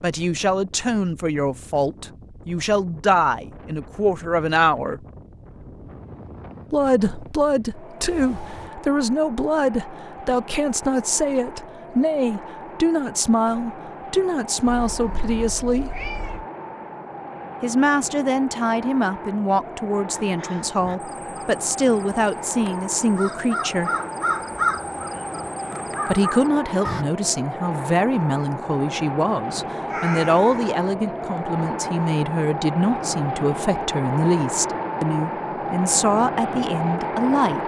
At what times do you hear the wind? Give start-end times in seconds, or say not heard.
0.0-37.6.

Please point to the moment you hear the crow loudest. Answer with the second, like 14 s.
25 s.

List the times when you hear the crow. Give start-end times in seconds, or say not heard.
20.2-27.1.